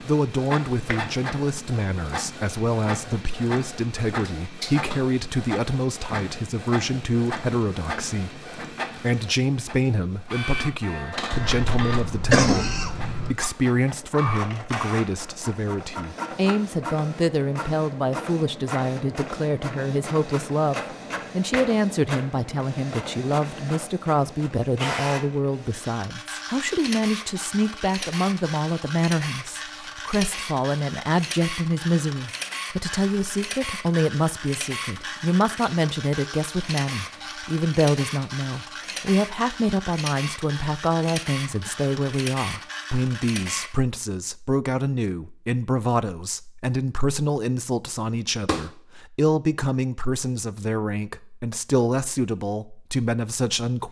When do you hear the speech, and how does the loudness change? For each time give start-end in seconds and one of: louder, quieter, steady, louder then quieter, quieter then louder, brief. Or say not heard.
0.0-53.8 steady.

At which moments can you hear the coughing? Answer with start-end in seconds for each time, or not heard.
11.3-13.3.